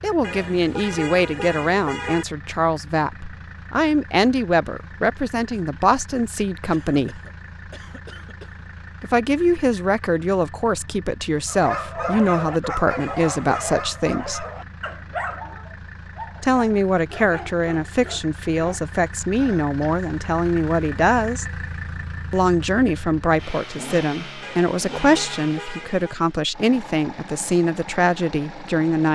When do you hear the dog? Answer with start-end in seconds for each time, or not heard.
11.4-18.9.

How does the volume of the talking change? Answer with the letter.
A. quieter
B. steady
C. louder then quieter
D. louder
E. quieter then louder
B.